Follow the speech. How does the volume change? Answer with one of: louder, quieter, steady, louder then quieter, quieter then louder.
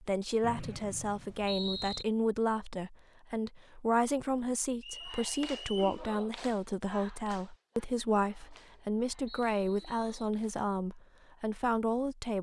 steady.